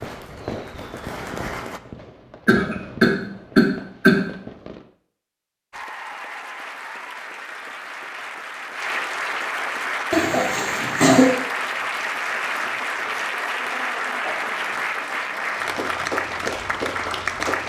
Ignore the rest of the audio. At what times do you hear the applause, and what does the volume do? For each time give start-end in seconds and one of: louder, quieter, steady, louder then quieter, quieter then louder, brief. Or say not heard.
0.0-1.8 brief
5.7-17.6 louder.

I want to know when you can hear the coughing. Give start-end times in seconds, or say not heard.
2.5-4.2, 10.1-11.3.